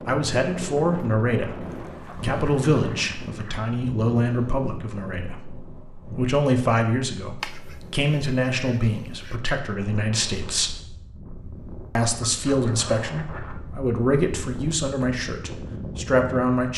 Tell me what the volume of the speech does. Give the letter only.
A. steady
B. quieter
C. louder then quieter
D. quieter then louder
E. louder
A.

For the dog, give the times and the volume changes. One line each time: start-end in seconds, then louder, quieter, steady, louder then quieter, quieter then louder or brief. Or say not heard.
not heard.